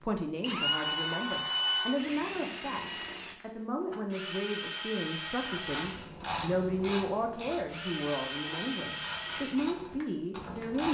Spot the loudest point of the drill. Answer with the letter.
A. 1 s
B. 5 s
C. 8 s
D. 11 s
A.